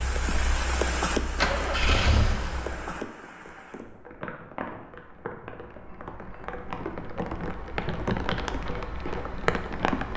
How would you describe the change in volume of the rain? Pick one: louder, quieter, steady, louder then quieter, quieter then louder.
quieter then louder.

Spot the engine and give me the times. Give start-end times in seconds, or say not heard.
0.0-2.9.